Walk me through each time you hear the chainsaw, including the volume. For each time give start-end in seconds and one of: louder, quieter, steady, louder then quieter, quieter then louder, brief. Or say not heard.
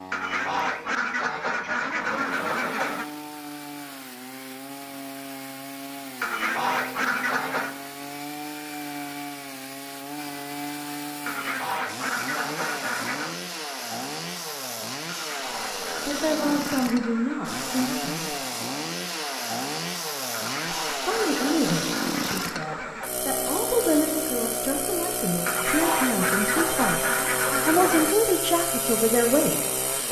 0.0-30.0 louder.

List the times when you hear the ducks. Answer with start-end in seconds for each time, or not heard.
0.1-3.0, 6.2-7.8, 11.2-13.4, 15.1-17.9, 20.4-23.1, 25.4-28.1.